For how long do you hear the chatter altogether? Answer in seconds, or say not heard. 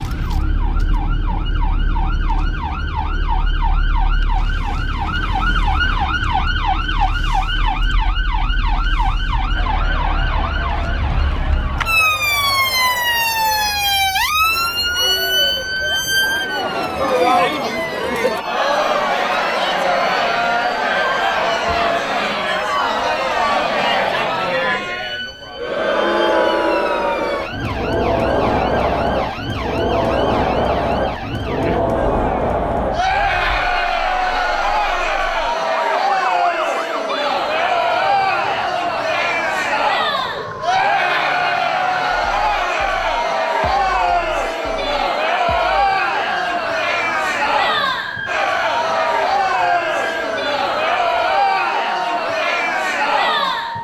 44 s.